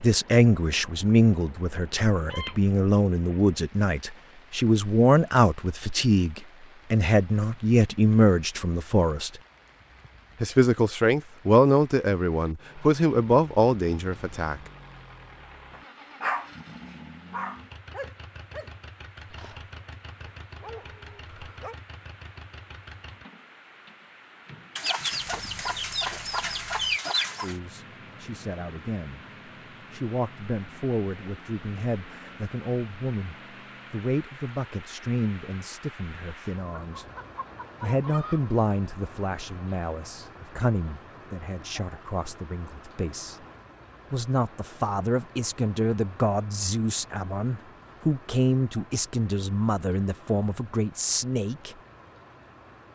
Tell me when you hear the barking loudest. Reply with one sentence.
The loudest moment of the barking is at 16 seconds.